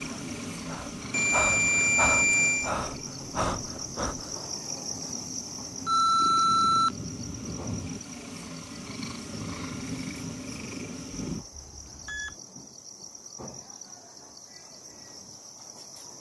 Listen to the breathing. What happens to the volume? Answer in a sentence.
The volume of the breathing goes up.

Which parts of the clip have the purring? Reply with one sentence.
You can hear the purring from 0.0 to 11.4 s.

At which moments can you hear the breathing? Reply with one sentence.
The breathing can be heard from 0.0 to 4.3 s.